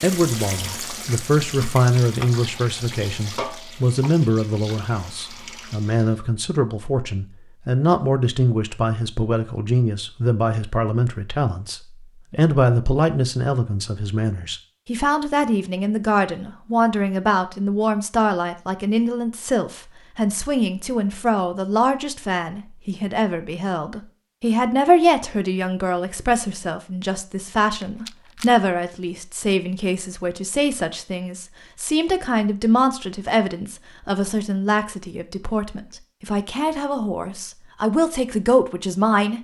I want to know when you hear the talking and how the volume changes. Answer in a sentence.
The talking can be heard from 0.0 to 39.3 s, at a steady volume.